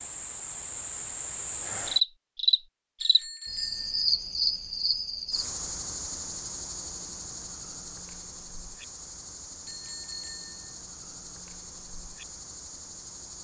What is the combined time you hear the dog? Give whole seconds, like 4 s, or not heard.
not heard.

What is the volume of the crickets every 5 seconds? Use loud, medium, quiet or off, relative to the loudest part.
loud, medium, quiet.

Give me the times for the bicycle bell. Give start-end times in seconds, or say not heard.
3.0-4.0, 9.7-10.8.